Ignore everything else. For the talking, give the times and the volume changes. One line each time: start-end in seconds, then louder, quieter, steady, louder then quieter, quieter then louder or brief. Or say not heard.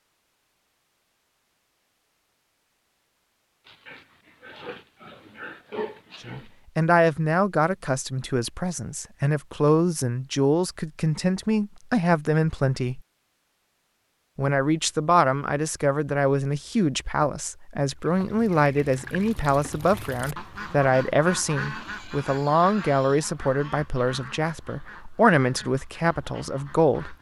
6.2-13.0 quieter then louder
14.3-27.1 steady.